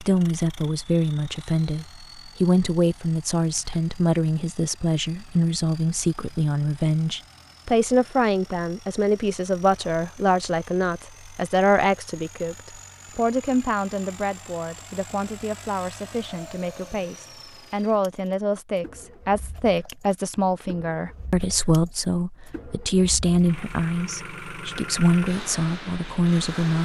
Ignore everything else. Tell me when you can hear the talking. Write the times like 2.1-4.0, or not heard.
0.0-26.8.